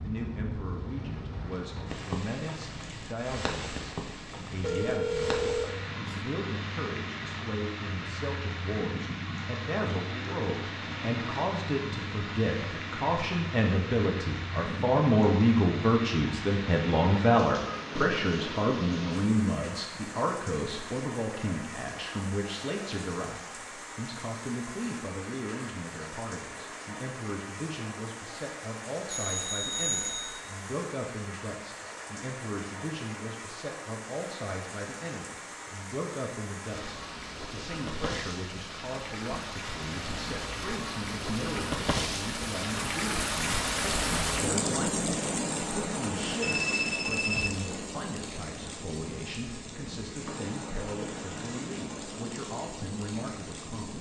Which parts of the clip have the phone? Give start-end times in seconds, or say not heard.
4.6-6.2, 29.1-30.4, 46.4-47.5.